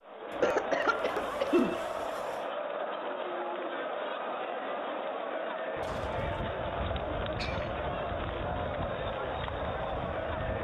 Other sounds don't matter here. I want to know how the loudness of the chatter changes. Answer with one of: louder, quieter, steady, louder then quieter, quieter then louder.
steady.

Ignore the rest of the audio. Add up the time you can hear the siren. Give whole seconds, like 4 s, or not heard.
5 s.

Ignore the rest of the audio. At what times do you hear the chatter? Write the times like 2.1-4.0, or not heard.
0.0-10.5.